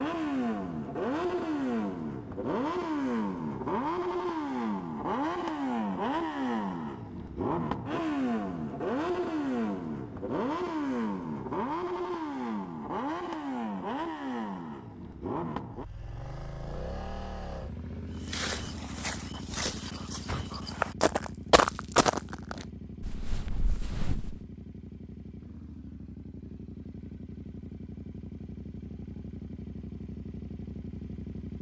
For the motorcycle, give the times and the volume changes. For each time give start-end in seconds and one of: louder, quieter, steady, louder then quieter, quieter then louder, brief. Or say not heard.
0.0-31.5 quieter.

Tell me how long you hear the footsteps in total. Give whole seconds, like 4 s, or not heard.
6 s.